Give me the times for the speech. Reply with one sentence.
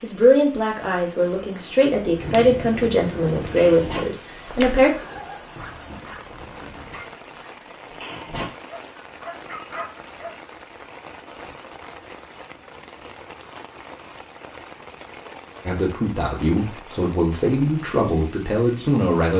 The speech can be heard from 0.0 to 4.9 s and from 15.7 to 19.3 s.